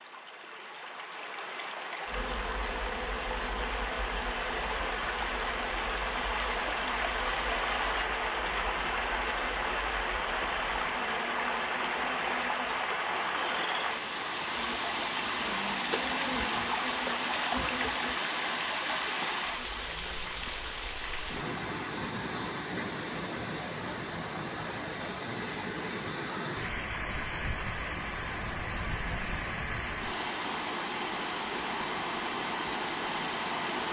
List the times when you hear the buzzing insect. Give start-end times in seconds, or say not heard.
2.0-18.2.